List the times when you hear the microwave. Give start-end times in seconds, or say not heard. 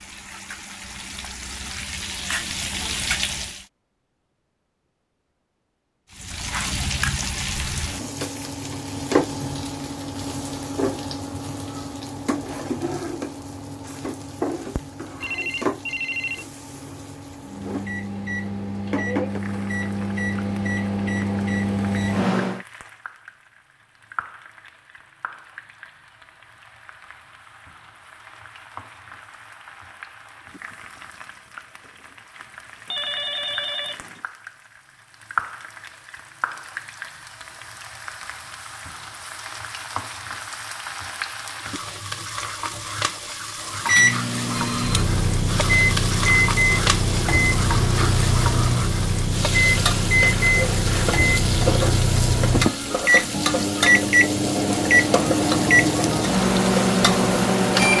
17.4-22.6, 43.8-57.9.